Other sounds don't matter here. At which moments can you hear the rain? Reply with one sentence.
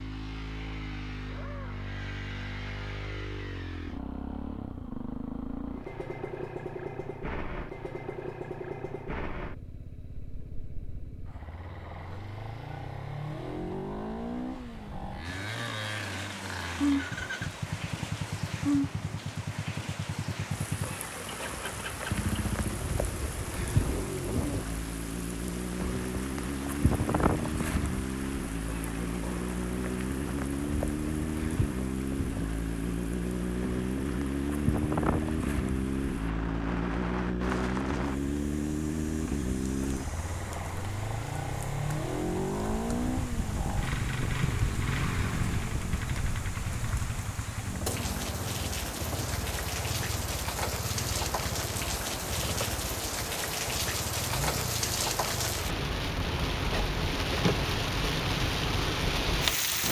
You can hear the rain from 15.2 to 59.8 s.